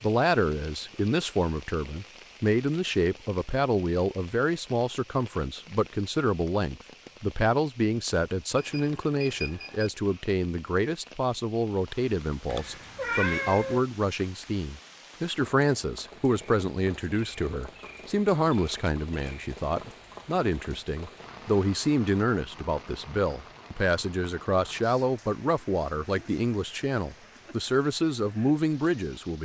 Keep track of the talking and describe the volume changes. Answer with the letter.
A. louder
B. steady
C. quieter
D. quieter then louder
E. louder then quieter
B.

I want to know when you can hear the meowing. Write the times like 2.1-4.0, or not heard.
12.5-13.8.